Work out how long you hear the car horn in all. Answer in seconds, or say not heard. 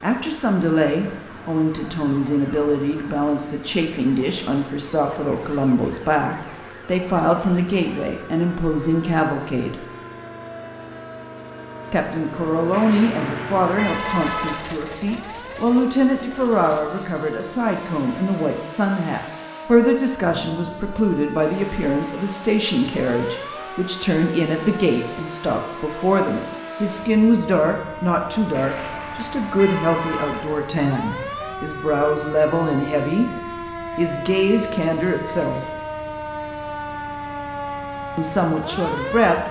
4 s.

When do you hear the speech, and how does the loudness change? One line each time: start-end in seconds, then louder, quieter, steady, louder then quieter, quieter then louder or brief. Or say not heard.
0.0-9.8 steady
11.9-33.3 steady
34.0-35.6 brief
38.1-39.4 brief.